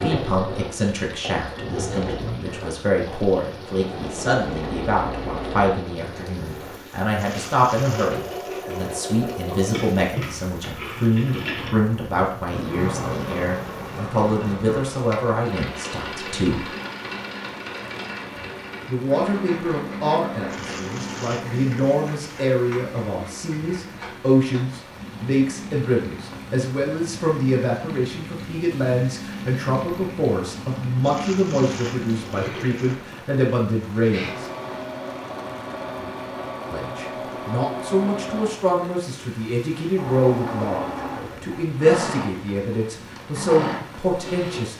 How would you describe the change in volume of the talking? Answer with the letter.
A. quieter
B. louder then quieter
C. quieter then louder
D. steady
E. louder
D.